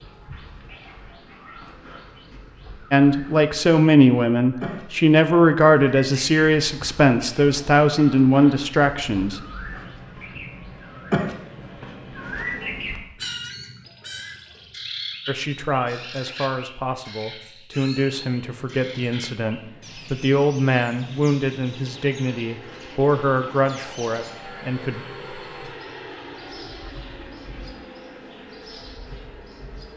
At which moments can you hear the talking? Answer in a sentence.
The talking can be heard from 2.9 to 9.4 s and from 15.2 to 25.0 s.